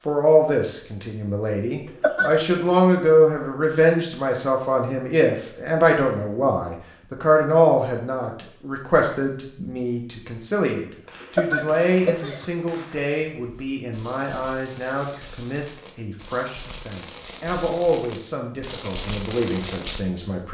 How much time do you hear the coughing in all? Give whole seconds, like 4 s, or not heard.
2 s.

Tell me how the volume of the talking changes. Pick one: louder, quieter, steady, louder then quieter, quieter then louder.
quieter.